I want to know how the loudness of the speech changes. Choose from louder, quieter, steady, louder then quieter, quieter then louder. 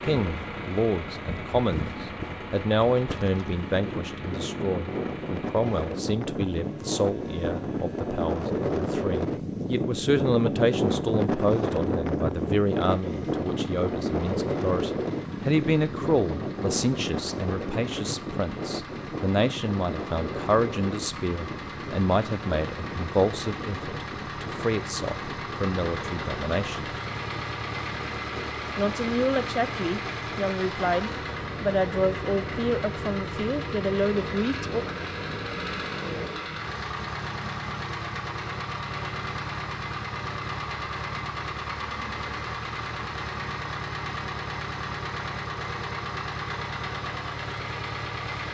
steady.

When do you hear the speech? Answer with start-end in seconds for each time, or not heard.
0.0-26.9, 28.8-34.9.